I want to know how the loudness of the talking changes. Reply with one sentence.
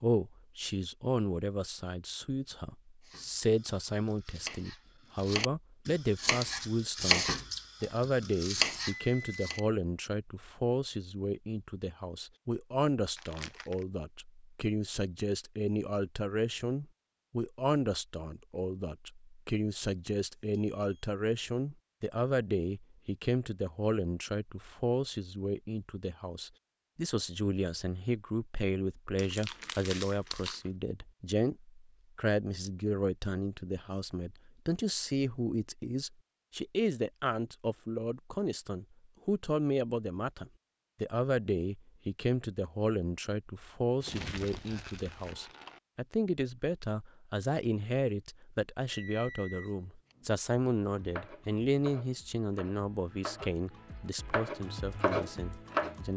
The loudness of the talking stays about the same.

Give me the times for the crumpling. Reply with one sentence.
The crumpling can be heard from 13.2 to 13.8 s, from 29.1 to 30.6 s and from 44.0 to 45.8 s.